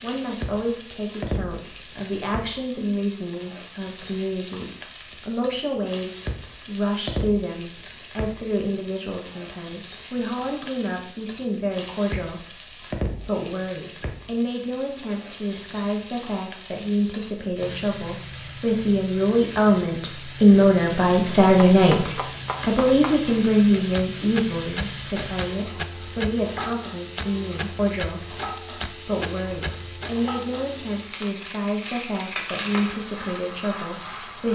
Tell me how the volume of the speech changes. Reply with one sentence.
The volume of the speech goes up, then down.